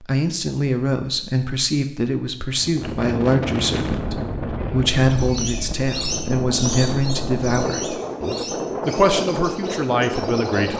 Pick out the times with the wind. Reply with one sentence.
You can hear the wind from 2.5 to 10.7 s.